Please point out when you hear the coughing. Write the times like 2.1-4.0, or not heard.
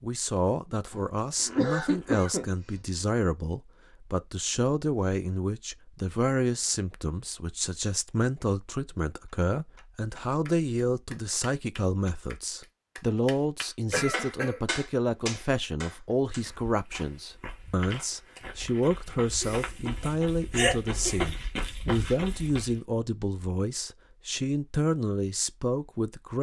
0.9-2.8, 13.9-14.6, 19.4-21.3.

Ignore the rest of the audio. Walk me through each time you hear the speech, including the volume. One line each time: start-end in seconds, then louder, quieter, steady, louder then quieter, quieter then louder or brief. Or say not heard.
0.0-26.3 steady.